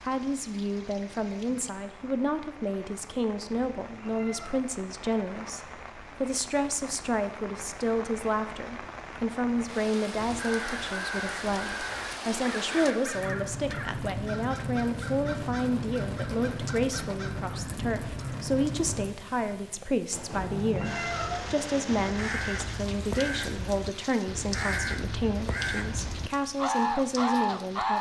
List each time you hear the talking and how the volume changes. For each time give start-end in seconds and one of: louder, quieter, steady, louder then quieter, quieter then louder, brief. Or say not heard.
0.0-27.9 steady.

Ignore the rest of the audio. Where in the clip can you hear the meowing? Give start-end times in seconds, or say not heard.
3.4-4.6, 20.1-22.1.